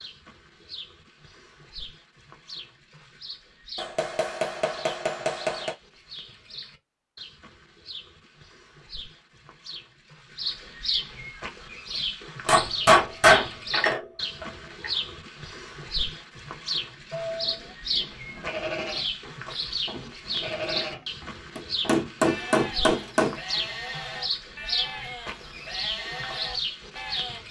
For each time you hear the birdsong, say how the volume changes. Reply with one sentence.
The birdsong can be heard from 0.0 to 27.4 s, getting louder.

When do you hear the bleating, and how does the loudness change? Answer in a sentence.
You can hear the bleating from 17.1 to 27.4 s, at a steady volume.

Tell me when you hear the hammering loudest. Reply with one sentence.
The loudest moment of the hammering is at 13 seconds.